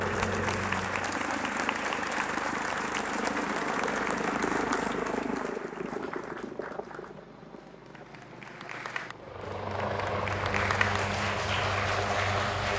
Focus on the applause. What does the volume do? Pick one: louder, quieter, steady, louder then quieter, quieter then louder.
quieter then louder.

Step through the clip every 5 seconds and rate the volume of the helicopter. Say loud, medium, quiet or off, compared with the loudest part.
loud, medium, loud.